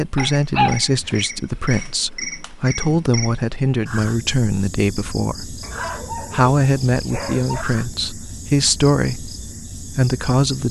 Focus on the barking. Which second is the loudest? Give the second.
1 s.